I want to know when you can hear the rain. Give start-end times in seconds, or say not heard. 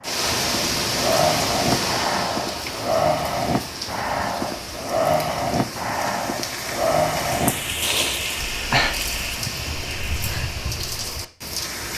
0.0-11.9.